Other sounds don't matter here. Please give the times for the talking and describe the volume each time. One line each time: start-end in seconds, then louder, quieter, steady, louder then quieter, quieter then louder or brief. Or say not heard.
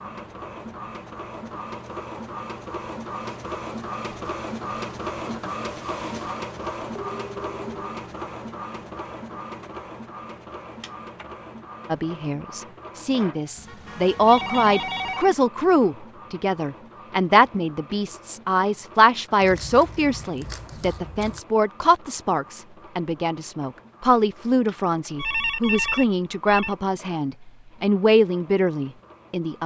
11.9-29.6 steady.